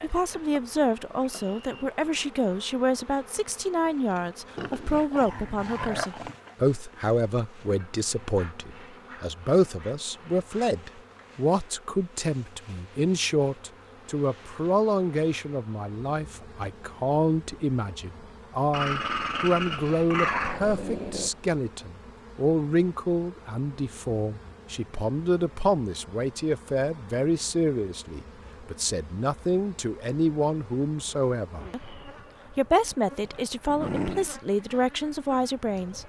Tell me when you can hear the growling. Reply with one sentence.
The growling can be heard from 4.5 to 6.5 s, from 18.7 to 21.3 s and from 33.2 to 34.3 s.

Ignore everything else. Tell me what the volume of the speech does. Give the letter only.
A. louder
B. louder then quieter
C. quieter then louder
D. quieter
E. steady
E.